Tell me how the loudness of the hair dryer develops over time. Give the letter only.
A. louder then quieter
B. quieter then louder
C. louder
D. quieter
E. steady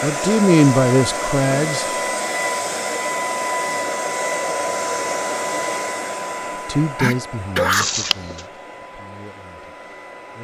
D.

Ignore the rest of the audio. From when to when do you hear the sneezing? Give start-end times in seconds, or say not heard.
7.0-8.0.